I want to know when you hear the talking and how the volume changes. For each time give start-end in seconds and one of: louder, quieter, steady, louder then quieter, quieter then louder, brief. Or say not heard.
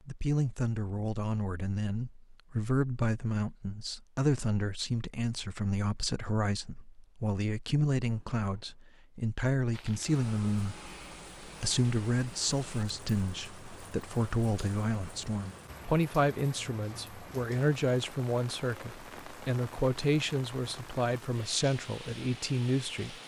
0.1-23.1 steady.